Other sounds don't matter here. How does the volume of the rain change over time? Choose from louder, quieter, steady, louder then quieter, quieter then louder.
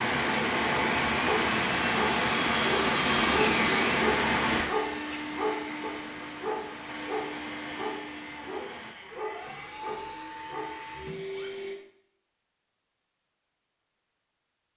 quieter.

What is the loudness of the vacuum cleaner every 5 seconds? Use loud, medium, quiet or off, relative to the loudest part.
loud, medium, medium.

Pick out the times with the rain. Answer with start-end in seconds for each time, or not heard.
0.0-8.9.